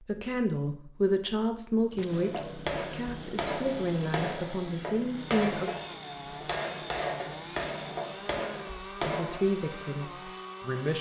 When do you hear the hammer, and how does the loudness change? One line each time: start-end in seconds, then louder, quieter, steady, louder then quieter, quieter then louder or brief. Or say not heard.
2.2-9.5 steady.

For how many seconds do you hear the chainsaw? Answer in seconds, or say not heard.
9 s.